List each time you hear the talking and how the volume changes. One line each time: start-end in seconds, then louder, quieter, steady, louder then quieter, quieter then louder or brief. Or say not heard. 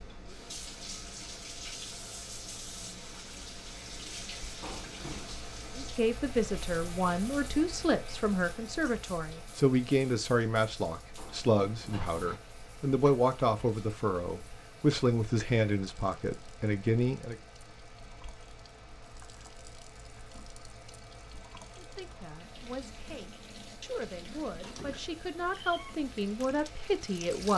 5.8-17.4 steady
21.8-27.5 louder.